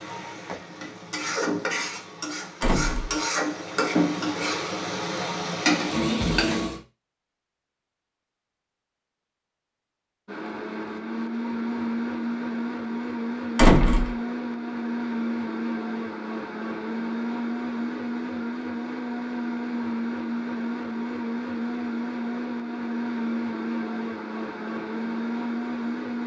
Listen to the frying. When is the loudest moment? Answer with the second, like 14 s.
6 s.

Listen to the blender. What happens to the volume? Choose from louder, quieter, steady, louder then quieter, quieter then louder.
steady.